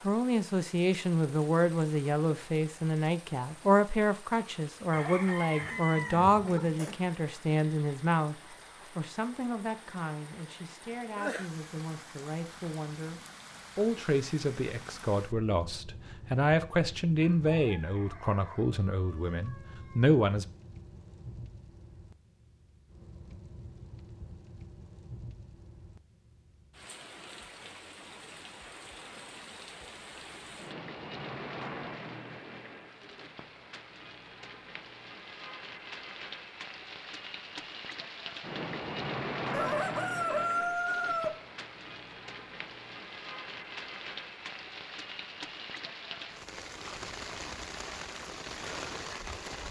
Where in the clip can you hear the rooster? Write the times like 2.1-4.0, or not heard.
4.9-7.0, 17.2-20.1, 39.5-41.4.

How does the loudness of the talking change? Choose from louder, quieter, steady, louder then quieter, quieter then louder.
quieter then louder.